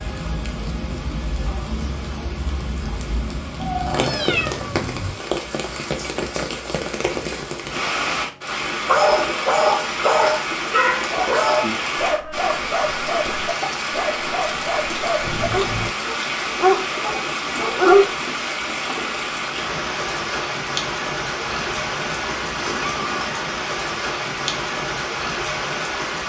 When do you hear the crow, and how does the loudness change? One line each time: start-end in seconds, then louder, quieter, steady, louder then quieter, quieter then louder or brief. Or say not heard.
not heard.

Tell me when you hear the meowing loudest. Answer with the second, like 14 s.
4 s.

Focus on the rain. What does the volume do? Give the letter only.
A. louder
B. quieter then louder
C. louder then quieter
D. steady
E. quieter
D.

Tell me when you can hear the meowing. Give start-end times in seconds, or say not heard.
3.6-5.2, 15.2-15.9, 21.4-23.4.